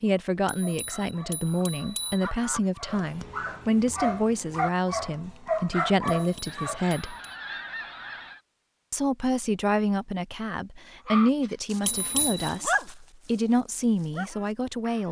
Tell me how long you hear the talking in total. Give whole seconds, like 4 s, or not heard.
13 s.